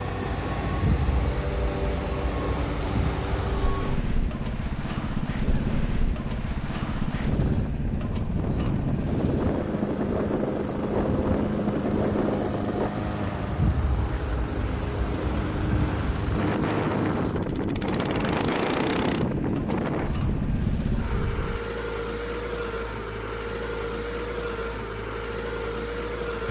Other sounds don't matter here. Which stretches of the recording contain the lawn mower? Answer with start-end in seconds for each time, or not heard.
0.0-26.4.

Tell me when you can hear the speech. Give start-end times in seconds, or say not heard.
not heard.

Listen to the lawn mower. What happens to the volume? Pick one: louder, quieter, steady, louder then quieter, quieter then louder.
steady.